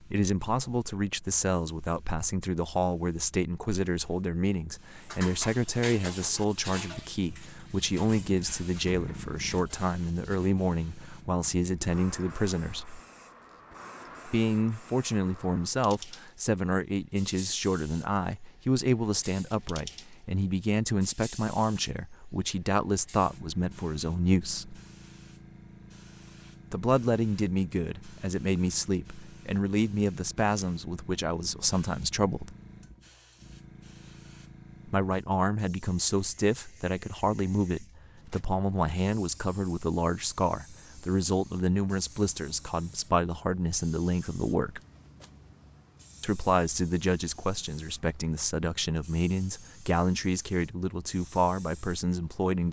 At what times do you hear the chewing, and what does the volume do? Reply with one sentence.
You can't hear the chewing here.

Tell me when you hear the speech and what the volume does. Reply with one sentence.
The speech can be heard from 0.0 to 13.0 s, at a steady volume; from 14.2 to 24.8 s, at a steady volume; from 26.7 to 32.5 s, at a steady volume; from 34.9 to 44.8 s, at a steady volume; and from 46.2 to 52.6 s, at a steady volume.